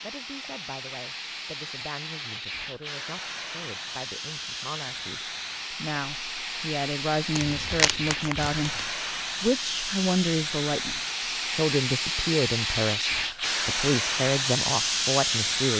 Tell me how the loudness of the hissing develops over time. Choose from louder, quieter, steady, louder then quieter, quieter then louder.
louder.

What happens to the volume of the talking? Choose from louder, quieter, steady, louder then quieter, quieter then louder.
louder.